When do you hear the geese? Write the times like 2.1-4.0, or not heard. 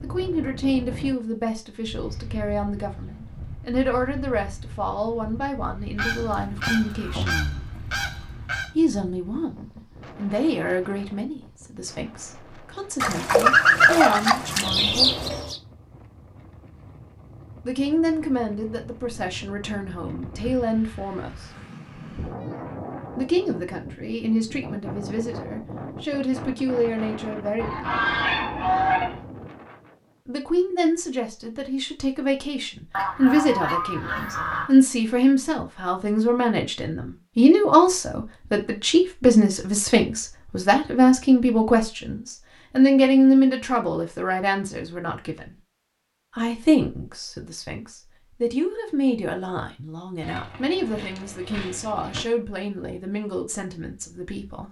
6.0-8.7, 13.0-15.6, 27.6-29.2, 32.9-34.7, 50.2-52.2.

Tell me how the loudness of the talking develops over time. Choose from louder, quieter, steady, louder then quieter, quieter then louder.
louder then quieter.